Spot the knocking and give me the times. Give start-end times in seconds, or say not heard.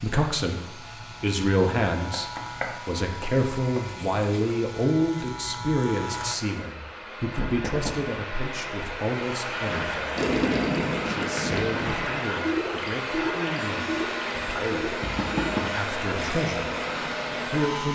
2.1-3.9, 7.4-8.0, 15.0-15.7.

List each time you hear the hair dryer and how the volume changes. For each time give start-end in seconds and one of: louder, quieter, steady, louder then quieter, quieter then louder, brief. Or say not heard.
0.0-17.9 louder.